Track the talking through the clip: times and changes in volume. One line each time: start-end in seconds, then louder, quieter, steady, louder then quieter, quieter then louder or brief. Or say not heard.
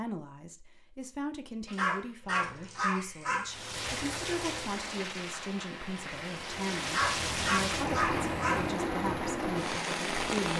0.0-10.5 steady.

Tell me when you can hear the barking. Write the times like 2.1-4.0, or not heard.
1.6-3.5, 6.8-8.7.